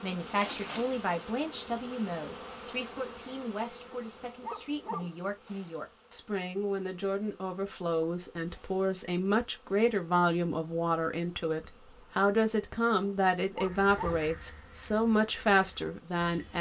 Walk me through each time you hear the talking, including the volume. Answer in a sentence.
The talking can be heard from 0.0 to 16.5 s, getting louder.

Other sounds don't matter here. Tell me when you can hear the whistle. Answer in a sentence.
You can't hear the whistle here.